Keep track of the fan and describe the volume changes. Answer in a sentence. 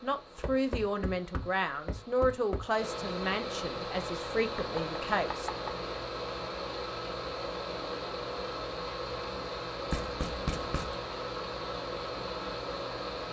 The loudness of the fan goes up.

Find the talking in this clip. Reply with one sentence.
You can hear the talking from 0.0 to 5.5 s.